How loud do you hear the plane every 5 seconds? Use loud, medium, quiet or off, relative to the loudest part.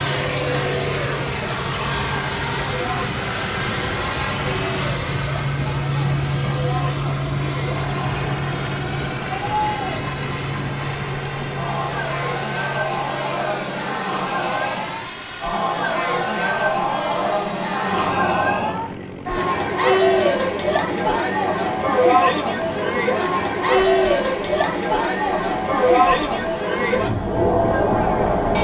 loud, loud, medium, medium, quiet, quiet.